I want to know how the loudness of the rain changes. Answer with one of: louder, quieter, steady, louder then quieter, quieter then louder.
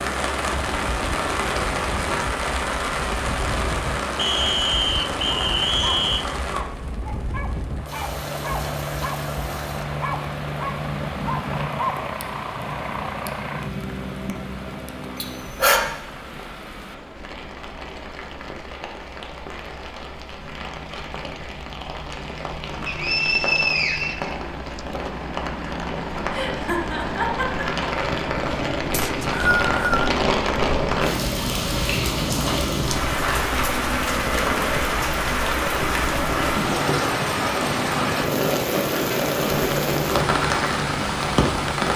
quieter then louder.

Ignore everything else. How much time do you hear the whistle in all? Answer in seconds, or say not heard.
5 s.